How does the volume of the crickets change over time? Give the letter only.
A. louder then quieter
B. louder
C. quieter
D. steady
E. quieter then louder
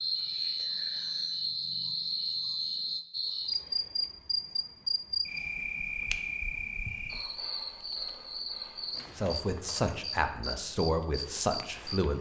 C.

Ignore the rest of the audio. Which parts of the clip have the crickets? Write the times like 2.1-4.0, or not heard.
0.0-12.1.